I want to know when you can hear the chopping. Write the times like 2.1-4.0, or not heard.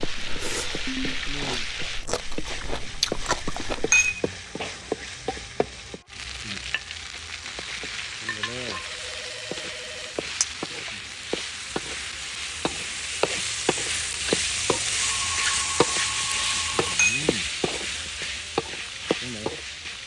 not heard.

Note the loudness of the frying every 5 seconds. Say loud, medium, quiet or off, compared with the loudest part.
medium, medium, loud, loud.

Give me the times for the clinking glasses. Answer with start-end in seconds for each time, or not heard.
3.9-4.9, 16.9-17.8.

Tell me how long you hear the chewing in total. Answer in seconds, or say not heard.
4 s.